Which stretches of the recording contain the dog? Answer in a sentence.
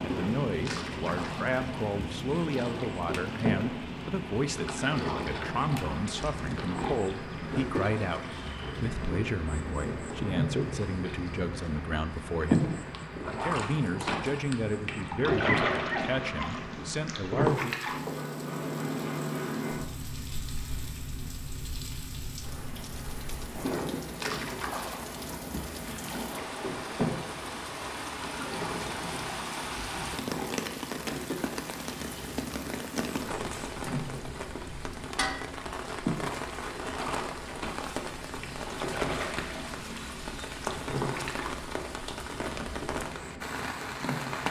The dog can be heard from 15.4 to 16.5 s.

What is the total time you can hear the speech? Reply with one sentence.
The speech can be heard for 18 seconds in total.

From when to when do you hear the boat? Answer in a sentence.
The boat can be heard from 0.0 to 44.4 s.